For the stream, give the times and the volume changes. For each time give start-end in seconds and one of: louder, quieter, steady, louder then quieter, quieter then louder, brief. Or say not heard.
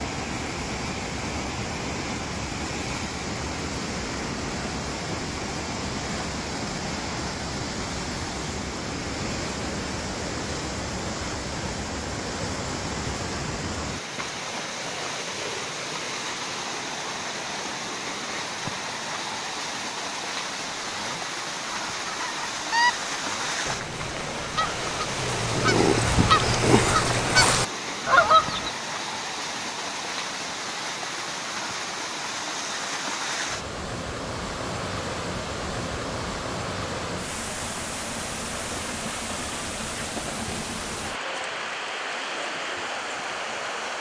0.0-43.9 steady.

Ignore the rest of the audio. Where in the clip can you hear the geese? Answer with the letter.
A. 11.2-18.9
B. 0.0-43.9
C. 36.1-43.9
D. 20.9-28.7
D.